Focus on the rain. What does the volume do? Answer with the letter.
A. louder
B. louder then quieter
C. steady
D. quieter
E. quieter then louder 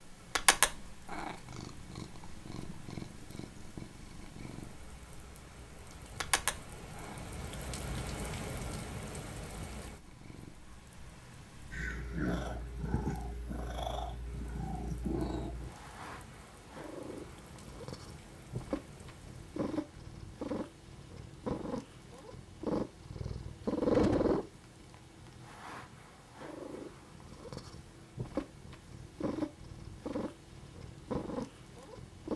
B.